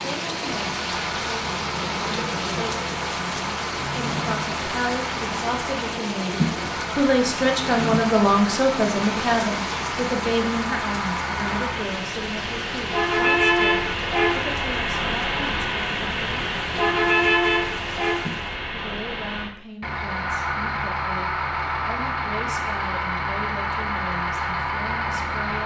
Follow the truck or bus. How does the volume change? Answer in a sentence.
The loudness of the truck or bus goes up.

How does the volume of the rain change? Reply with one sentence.
The loudness of the rain goes down.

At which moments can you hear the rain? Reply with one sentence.
You can hear the rain from 0.0 to 18.6 s.